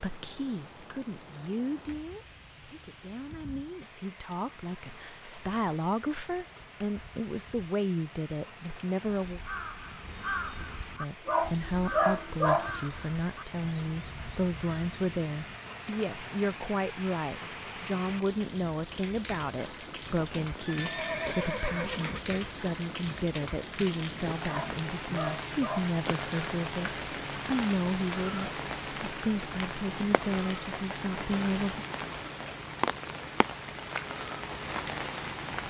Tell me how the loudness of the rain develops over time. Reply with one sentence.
The loudness of the rain goes up.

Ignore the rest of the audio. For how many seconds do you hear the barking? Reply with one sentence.
You can hear the barking for 3 seconds altogether.